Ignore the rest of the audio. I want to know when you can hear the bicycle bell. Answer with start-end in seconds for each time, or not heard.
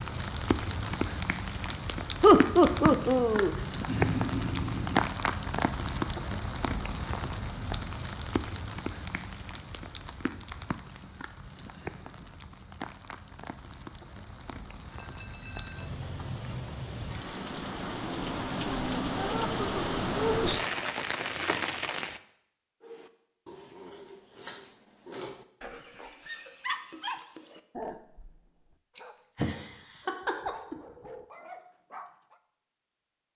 3.9-5.1, 14.9-15.9, 28.9-29.4.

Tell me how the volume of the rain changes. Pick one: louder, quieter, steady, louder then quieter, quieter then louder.
quieter then louder.